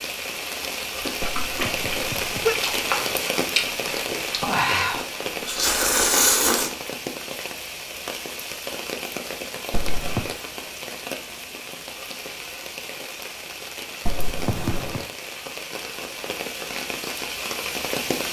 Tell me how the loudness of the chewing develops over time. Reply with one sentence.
The volume of the chewing goes up.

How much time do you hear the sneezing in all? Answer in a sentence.
The sneezing can be heard for 3 seconds in total.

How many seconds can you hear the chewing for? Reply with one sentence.
The chewing can be heard for 6 seconds in total.